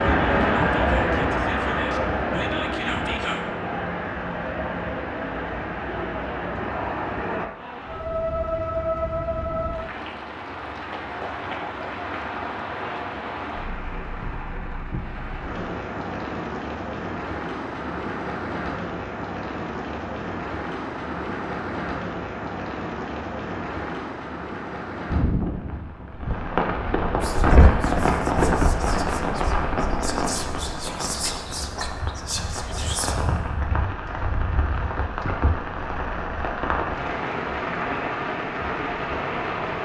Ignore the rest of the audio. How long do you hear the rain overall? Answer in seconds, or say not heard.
40 s.